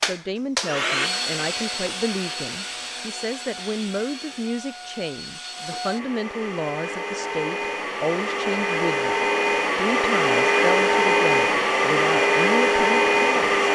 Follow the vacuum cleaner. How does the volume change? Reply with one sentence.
The loudness of the vacuum cleaner goes down, then up.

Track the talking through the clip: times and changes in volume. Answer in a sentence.
The talking can be heard from 0.0 to 13.7 s, at a steady volume.